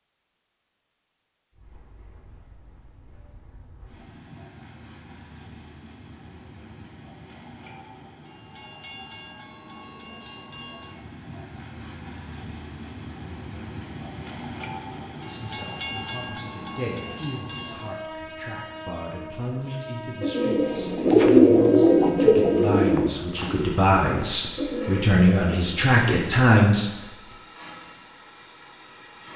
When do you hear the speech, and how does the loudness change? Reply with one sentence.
You can hear the speech from 15.2 to 26.9 s, getting louder.